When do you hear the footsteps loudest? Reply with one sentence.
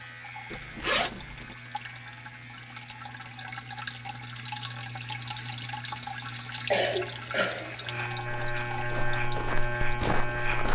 The volume of the footsteps peaks at 10 seconds.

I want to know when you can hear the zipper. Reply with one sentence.
You can hear the zipper from 0.5 to 1.6 s.